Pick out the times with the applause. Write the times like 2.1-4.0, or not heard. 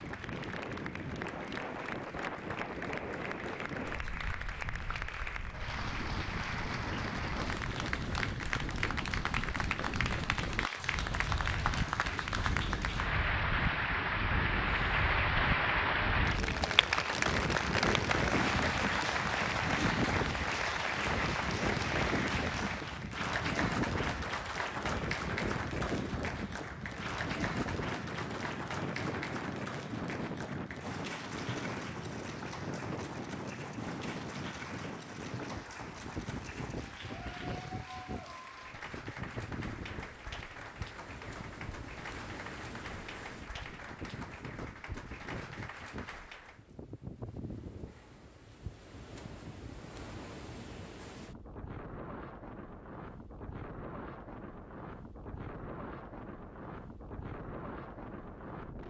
0.0-46.6.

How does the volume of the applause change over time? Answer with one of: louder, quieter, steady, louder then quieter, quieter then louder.
louder then quieter.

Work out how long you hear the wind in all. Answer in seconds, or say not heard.
59 s.